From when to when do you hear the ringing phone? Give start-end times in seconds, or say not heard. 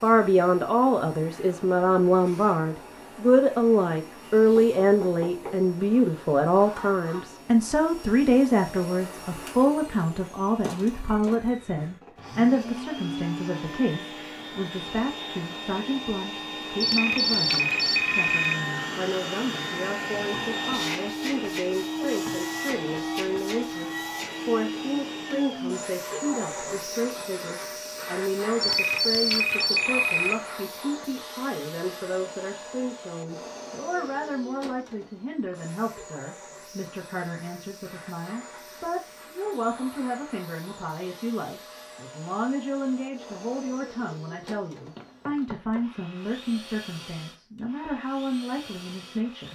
16.8-18.6, 28.6-30.4.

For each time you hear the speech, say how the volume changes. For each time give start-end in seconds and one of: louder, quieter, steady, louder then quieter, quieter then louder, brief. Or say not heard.
0.0-49.4 quieter.